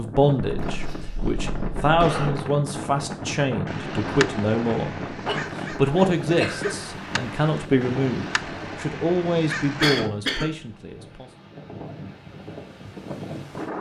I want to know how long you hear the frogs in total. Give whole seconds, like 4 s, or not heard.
not heard.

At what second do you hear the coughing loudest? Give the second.
10 s.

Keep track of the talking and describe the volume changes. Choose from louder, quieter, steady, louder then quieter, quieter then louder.
steady.